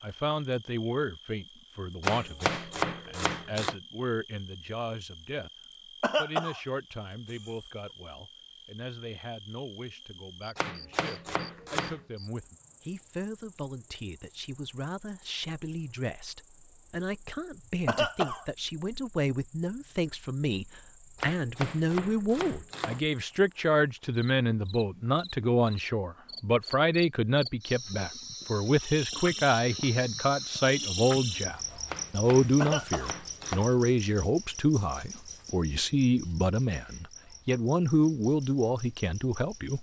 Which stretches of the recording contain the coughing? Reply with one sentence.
The coughing can be heard from 6.0 to 6.6 s, from 17.9 to 18.4 s and from 32.6 to 33.1 s.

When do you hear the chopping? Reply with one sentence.
You can hear the chopping from 2.0 to 3.8 s, from 10.6 to 12.1 s, from 21.1 to 23.0 s and from 31.9 to 33.7 s.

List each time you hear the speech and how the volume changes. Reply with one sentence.
You can hear the speech from 0.0 to 5.5 s, getting quieter then louder; and from 6.2 to 39.7 s, getting louder.